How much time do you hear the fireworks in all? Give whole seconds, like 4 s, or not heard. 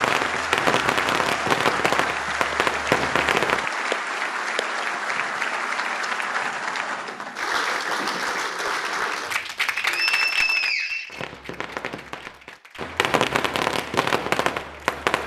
8 s.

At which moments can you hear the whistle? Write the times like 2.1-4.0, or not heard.
9.8-11.2.